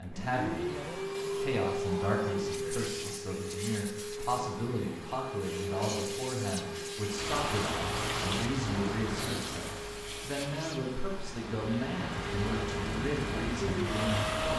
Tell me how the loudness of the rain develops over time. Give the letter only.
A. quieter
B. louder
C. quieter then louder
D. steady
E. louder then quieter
C.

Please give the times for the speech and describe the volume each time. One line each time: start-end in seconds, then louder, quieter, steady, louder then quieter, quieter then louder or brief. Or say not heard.
0.0-14.5 steady.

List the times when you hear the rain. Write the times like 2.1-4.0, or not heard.
7.0-14.5.